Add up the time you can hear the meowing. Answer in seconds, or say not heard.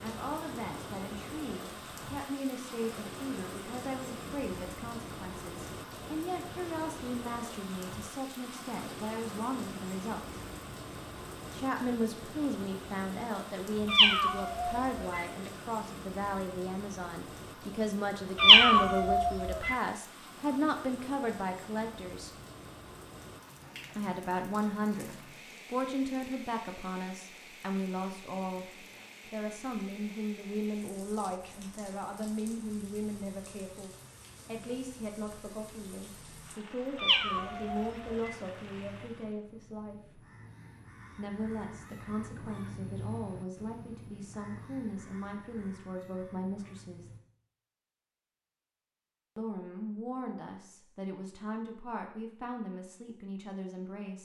4 s.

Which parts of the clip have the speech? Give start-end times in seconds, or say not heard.
0.0-10.4, 11.5-22.3, 23.9-40.2, 41.1-47.1, 49.4-54.2.